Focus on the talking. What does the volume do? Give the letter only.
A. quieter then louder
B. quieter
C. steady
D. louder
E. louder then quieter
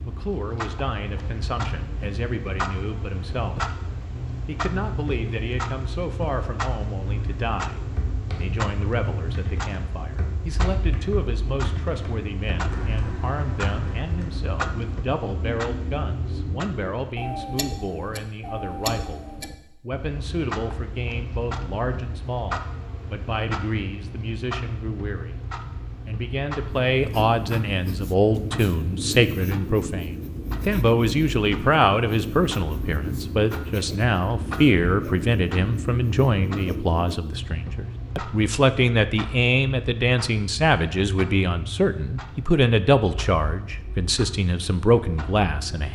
D.